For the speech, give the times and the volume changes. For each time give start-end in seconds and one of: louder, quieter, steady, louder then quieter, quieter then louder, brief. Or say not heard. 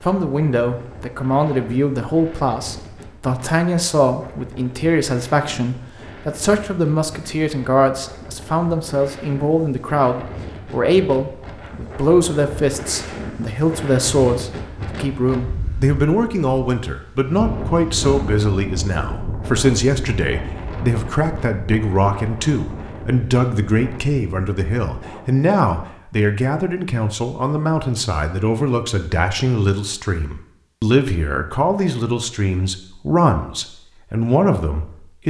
0.0-35.2 steady.